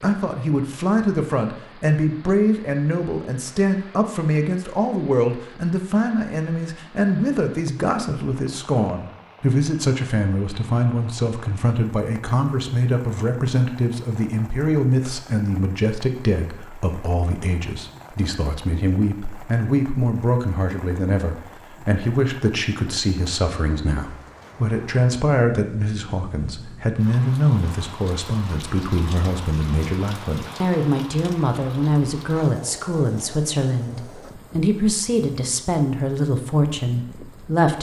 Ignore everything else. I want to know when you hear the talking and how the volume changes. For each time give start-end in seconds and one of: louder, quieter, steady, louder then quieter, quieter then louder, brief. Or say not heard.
0.0-37.7 steady.